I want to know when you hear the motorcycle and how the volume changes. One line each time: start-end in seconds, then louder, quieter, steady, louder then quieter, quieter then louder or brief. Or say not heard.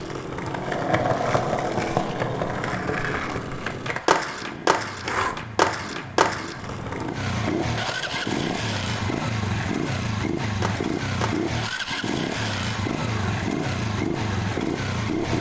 0.0-15.3 louder.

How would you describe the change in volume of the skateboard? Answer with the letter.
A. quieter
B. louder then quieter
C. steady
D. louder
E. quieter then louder
A.